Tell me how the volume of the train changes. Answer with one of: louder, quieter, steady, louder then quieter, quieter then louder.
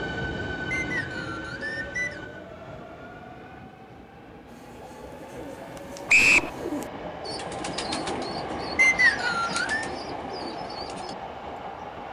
quieter then louder.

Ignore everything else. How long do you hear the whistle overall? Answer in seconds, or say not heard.
3 s.